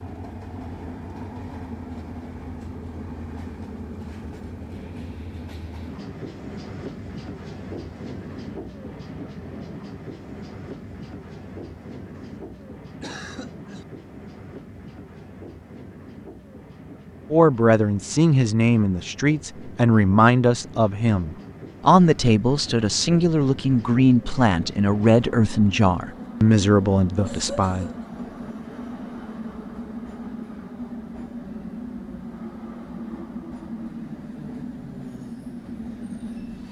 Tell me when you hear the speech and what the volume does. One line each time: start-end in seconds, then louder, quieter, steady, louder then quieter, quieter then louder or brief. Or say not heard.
17.3-27.9 steady.